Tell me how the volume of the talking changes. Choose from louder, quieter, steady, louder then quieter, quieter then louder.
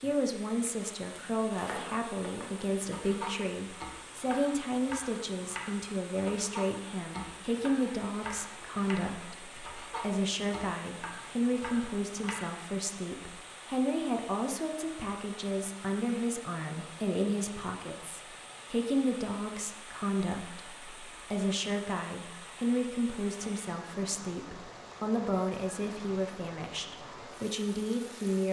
steady.